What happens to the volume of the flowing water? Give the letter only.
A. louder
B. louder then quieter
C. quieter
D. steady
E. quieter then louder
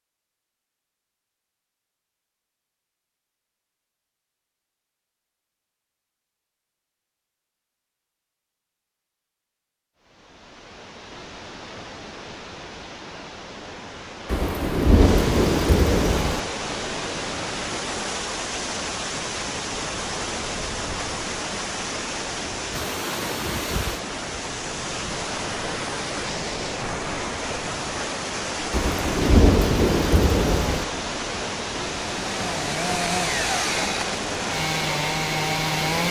A.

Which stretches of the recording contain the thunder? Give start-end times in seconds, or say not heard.
14.2-16.4, 28.7-30.9.